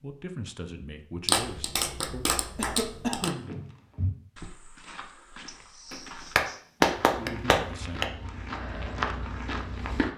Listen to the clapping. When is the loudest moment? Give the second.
7 s.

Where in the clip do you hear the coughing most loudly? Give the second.
3 s.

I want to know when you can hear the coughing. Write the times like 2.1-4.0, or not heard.
2.5-3.5, 5.5-6.7.